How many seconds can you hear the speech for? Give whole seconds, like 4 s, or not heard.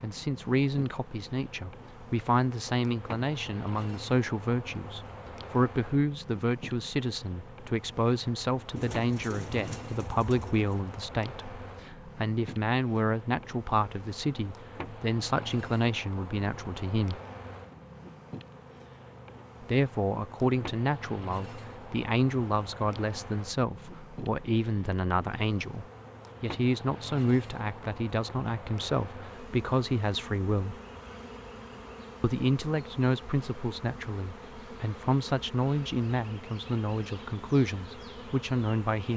35 s.